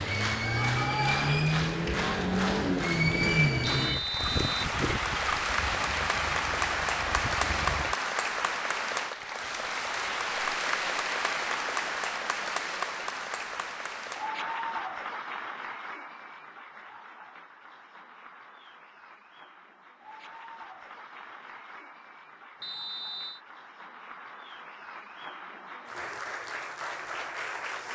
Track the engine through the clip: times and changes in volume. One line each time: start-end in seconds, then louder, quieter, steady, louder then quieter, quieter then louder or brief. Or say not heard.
0.0-8.0 quieter.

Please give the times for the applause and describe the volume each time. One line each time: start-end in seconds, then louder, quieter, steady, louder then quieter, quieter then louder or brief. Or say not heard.
0.0-27.9 quieter then louder.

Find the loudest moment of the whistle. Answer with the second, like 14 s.
4 s.